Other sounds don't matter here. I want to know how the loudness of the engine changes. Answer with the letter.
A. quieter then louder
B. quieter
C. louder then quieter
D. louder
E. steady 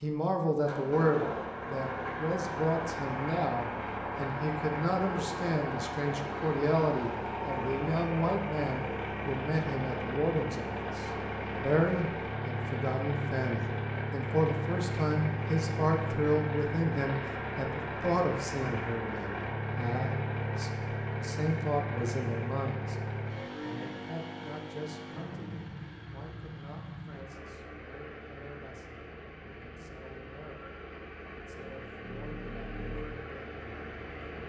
B.